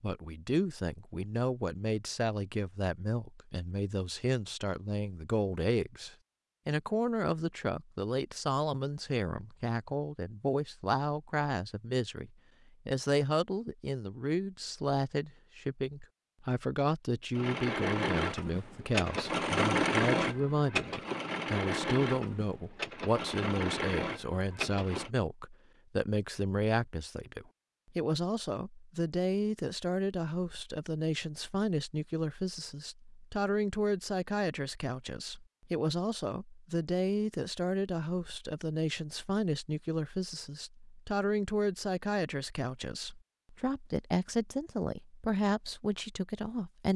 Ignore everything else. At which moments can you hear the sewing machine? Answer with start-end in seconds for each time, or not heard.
17.3-25.1.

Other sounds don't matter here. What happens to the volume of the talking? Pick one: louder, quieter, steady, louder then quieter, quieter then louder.
steady.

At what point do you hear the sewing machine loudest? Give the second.
20 s.